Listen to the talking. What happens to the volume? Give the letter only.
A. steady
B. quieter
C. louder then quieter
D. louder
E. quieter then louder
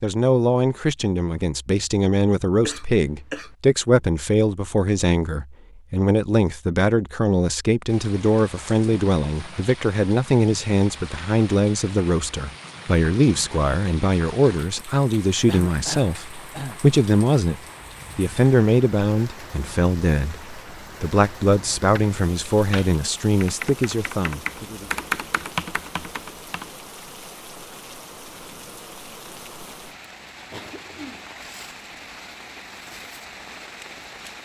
A.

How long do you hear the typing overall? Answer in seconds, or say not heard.
5 s.